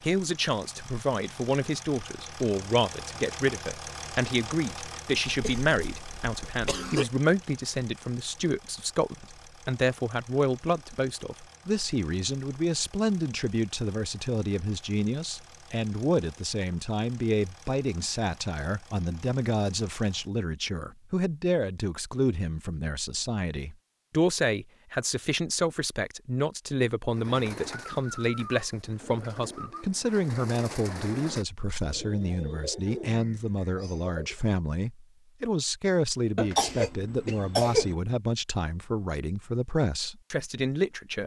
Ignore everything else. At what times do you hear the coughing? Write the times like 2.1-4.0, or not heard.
5.2-7.0, 36.4-38.0.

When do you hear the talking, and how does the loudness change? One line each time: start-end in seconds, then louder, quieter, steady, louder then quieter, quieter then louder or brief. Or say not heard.
0.0-41.2 steady.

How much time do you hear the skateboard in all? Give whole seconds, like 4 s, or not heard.
not heard.